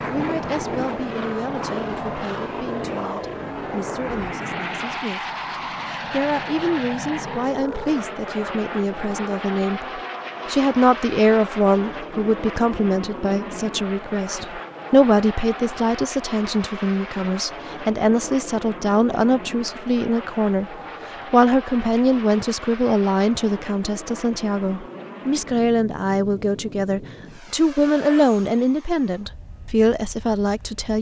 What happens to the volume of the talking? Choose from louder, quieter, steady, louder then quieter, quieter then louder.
louder.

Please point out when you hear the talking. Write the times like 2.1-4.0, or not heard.
0.1-5.2, 6.0-30.9.